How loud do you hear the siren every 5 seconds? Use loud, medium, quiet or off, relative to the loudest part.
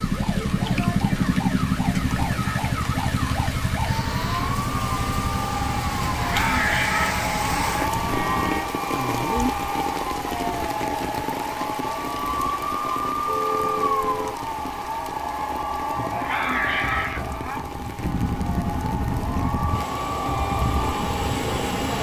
medium, loud, loud, loud, loud.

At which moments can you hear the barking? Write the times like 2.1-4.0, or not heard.
6.0-7.9, 15.9-17.6.